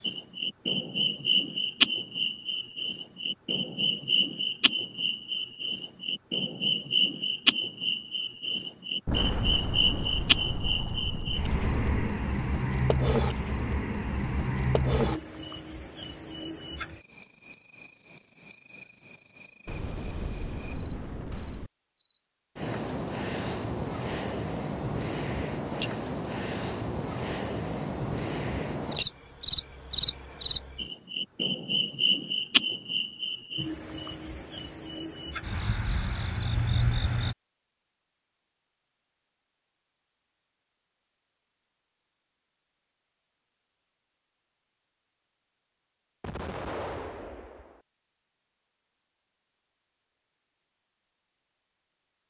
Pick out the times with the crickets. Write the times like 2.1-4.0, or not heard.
0.0-37.4.